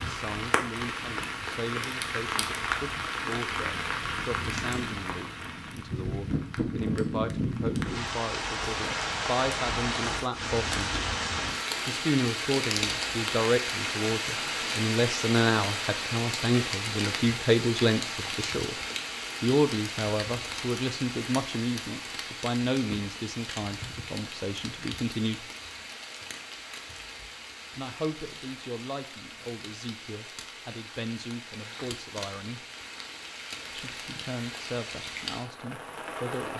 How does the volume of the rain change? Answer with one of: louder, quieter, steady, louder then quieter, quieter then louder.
quieter.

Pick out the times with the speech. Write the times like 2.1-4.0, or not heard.
0.0-10.9, 11.8-18.8, 19.4-25.5, 27.8-32.6, 33.7-36.5.